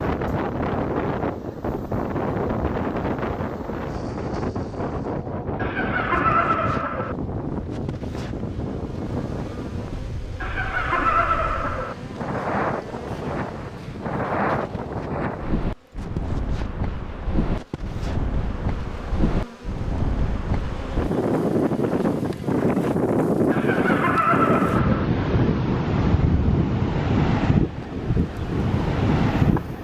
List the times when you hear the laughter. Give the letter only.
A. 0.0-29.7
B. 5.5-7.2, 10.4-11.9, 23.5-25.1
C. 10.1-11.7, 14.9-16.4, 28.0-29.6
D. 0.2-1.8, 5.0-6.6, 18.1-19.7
B.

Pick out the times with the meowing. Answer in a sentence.
The meowing can't be heard in this clip.